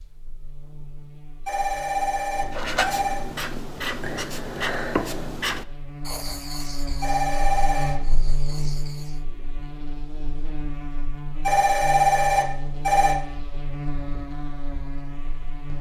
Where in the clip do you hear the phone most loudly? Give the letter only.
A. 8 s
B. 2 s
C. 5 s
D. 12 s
D.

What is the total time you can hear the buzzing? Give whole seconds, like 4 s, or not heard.
16 s.